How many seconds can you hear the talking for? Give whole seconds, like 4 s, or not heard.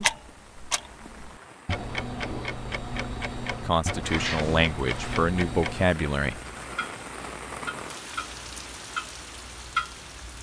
3 s.